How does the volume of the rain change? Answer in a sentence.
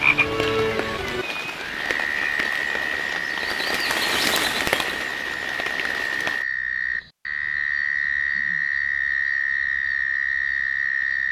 The volume of the rain goes up, then down.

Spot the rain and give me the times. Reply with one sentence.
You can hear the rain from 0.0 to 6.5 s.